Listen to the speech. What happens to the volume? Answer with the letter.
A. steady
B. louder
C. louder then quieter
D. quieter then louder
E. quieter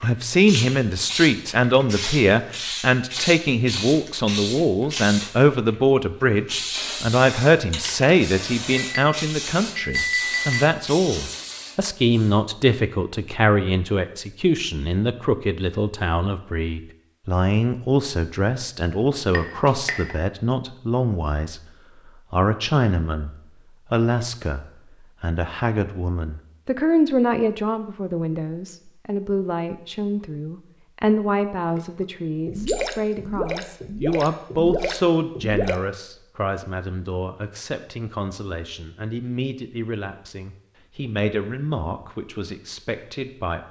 E.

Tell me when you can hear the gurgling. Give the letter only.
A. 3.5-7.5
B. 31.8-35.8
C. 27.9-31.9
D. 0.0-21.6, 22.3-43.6
B.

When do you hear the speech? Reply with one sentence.
You can hear the speech from 0.0 to 21.6 s and from 22.3 to 43.6 s.